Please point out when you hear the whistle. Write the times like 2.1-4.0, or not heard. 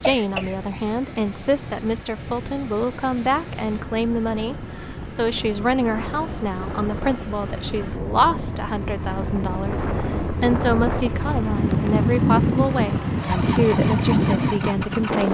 not heard.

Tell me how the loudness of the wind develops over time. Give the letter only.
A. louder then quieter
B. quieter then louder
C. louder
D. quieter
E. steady
C.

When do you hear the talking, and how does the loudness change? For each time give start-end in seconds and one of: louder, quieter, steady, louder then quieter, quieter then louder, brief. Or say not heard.
0.0-15.3 steady.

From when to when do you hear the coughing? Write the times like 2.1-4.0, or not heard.
0.0-0.6.